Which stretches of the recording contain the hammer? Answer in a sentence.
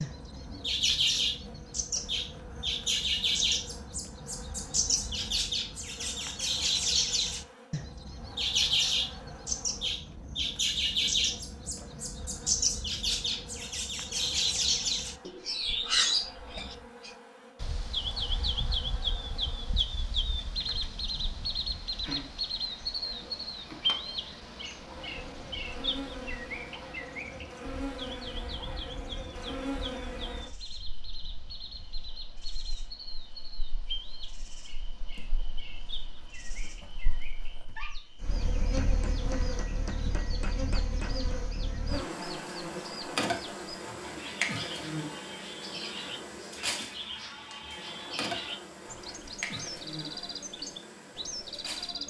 The hammer can be heard from 38.8 to 41.4 s.